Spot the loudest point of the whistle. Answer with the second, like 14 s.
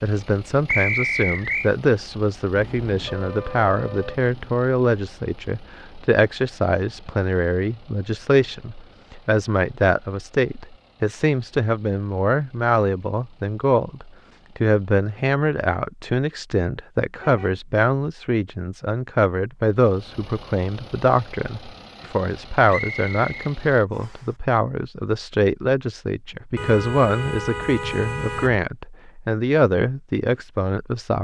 1 s.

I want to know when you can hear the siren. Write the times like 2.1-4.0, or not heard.
not heard.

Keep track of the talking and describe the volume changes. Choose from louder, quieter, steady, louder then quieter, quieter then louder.
steady.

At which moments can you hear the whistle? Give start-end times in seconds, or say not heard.
0.7-1.7, 22.7-24.2.